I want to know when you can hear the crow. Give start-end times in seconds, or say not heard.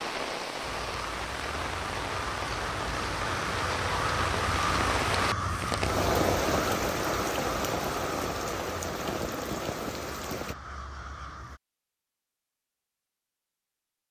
0.6-11.6.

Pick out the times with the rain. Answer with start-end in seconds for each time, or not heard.
0.0-10.6.